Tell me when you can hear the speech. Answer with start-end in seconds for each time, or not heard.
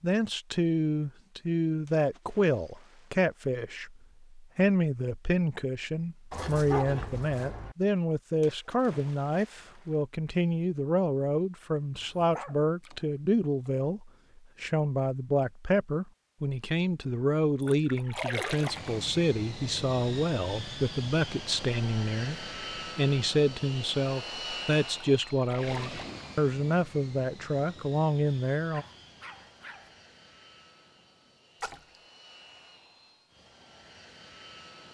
0.0-28.9.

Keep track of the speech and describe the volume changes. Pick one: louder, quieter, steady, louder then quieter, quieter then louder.
steady.